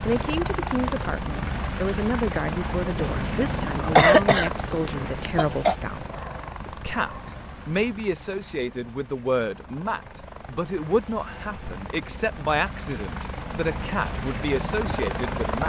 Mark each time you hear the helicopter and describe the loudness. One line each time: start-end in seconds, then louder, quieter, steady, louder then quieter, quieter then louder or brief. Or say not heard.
0.0-15.6 quieter then louder.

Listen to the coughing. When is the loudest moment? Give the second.
4 s.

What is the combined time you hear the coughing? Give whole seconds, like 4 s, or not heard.
3 s.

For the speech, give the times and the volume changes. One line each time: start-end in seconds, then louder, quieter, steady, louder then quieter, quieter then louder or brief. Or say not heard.
0.1-15.6 steady.